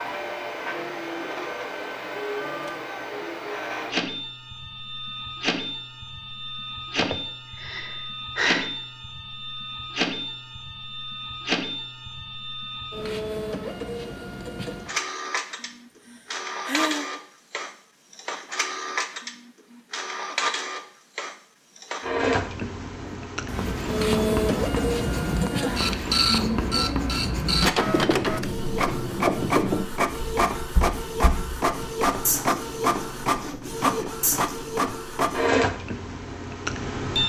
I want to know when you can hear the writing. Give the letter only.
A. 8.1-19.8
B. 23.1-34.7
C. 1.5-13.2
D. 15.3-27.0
B.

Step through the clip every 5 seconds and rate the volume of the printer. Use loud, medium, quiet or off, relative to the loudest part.
medium, medium, medium, medium, loud, loud, loud, loud.